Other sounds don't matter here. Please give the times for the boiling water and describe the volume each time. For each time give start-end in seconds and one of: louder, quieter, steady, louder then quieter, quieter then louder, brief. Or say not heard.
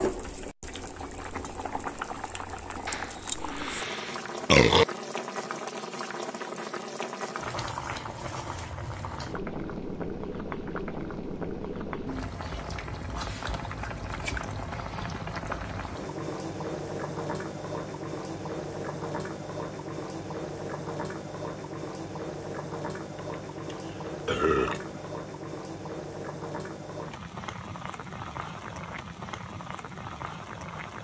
0.0-31.0 steady.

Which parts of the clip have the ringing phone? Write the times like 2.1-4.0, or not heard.
not heard.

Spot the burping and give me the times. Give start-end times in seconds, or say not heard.
2.9-4.8, 23.1-25.0.